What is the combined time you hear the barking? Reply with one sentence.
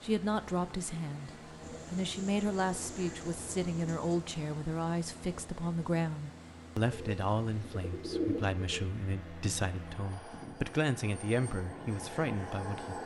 The barking can't be heard in this clip.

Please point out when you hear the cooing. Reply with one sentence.
You can hear the cooing from 1.6 to 4.2 s and from 6.9 to 8.8 s.